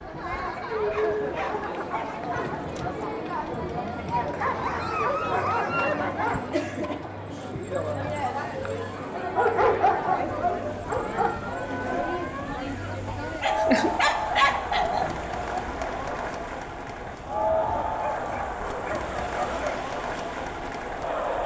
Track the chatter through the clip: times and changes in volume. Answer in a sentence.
The chatter can be heard from 0.0 to 21.4 s, at a steady volume.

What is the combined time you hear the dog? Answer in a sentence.
The dog can be heard for 10 seconds in total.